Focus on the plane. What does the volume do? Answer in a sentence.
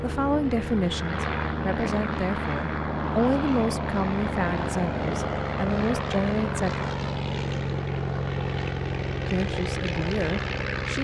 The volume of the plane stays about the same.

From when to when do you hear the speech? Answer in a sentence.
You can hear the speech from 0.0 to 6.8 s and from 9.2 to 11.0 s.